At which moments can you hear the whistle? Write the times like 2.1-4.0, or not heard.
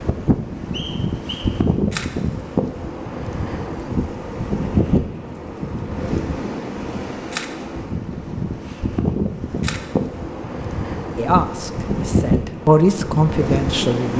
0.7-1.5.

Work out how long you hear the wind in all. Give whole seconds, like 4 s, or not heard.
14 s.